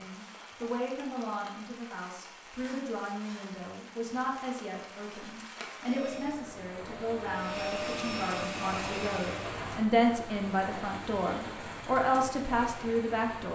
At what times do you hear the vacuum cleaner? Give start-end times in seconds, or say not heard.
5.8-9.7.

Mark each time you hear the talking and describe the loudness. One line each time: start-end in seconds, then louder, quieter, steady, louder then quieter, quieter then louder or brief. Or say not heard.
0.0-13.5 louder.